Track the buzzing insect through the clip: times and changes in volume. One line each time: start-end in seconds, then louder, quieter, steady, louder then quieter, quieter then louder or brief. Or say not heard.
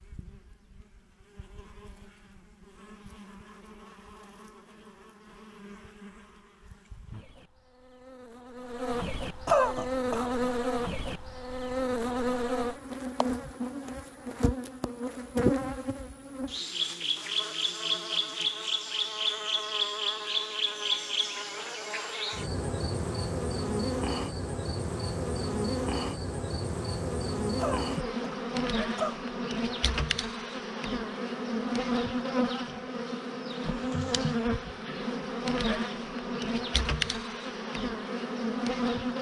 0.0-39.1 louder.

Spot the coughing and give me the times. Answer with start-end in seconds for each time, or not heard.
9.4-10.4, 27.6-29.2.